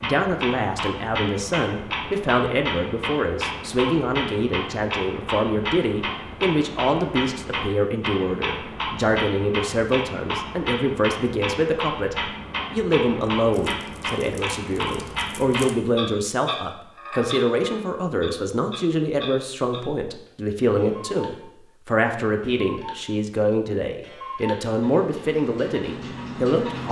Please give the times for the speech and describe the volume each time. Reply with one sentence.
You can hear the speech from 0.0 to 26.8 s, at a steady volume.